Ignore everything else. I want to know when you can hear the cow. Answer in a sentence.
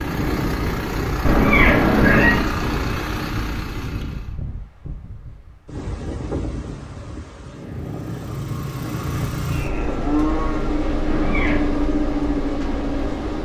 You can hear the cow from 9.4 to 10.8 s.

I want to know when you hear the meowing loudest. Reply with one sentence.
The volume of the meowing peaks at 2 seconds.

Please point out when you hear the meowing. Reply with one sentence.
The meowing can be heard from 1.2 to 2.5 s and from 11.1 to 11.8 s.